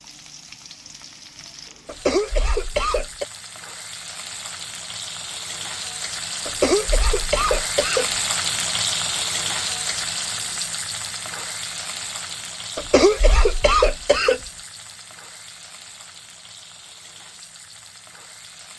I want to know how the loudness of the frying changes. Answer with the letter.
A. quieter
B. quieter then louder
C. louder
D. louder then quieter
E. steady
D.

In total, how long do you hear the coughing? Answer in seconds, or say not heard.
5 s.